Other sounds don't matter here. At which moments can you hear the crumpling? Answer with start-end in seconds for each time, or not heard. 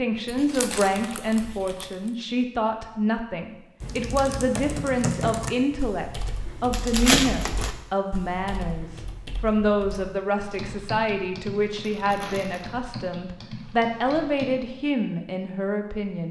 0.2-1.9, 6.7-7.8, 11.8-12.7.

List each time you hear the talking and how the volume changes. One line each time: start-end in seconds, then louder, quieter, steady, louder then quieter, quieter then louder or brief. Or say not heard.
0.0-16.2 steady.